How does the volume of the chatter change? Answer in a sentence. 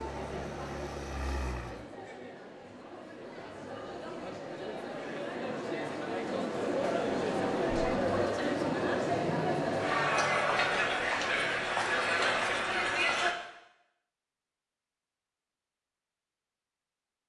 The volume of the chatter goes up.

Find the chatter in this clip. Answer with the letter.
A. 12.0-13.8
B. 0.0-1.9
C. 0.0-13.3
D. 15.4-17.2
C.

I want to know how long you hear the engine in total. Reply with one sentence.
The engine can be heard for 2 seconds in total.